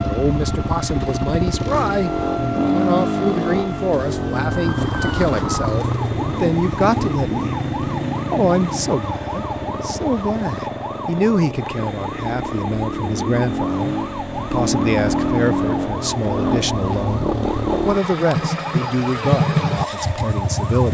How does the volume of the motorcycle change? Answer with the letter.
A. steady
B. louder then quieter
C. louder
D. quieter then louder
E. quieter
D.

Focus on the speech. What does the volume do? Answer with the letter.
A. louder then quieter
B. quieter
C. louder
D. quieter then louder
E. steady
E.